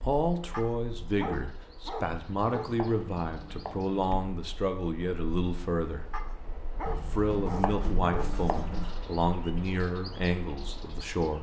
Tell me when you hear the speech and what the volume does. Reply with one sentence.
You can hear the speech from 0.0 to 6.0 s, at a steady volume; and from 7.0 to 11.3 s, at a steady volume.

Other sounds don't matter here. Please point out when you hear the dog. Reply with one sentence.
You can hear the dog from 0.5 to 2.7 s and from 6.1 to 8.3 s.